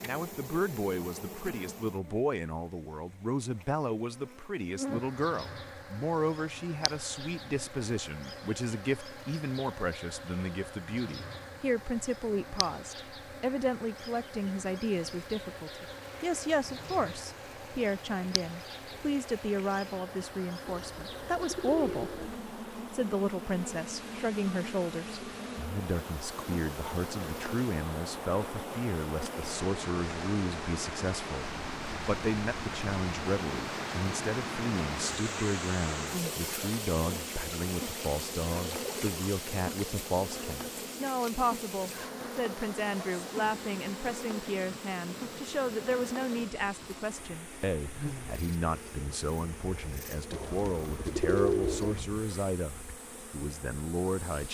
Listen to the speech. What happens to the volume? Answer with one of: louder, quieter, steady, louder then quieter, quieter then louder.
steady.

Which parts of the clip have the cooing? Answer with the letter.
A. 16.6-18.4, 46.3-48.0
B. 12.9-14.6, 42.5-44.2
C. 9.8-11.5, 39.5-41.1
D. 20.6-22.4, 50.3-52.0
D.